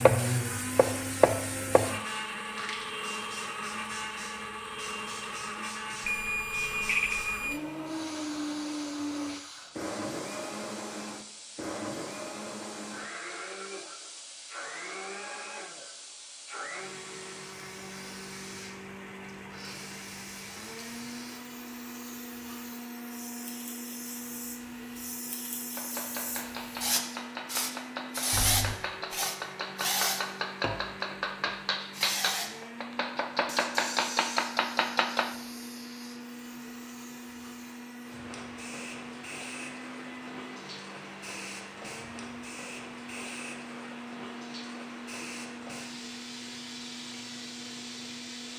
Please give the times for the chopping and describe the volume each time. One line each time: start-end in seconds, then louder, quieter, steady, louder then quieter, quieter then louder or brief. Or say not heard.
0.0-2.0 brief
25.7-35.4 louder.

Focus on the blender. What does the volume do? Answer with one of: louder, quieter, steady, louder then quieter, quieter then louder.
quieter.